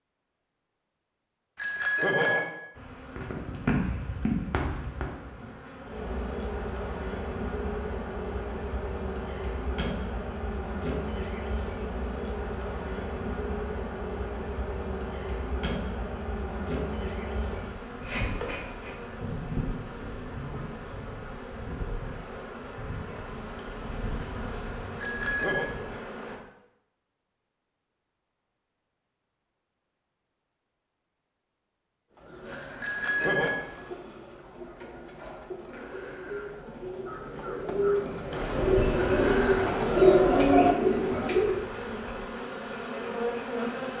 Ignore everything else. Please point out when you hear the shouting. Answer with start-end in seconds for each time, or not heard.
not heard.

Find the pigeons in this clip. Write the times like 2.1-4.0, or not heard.
32.1-41.6.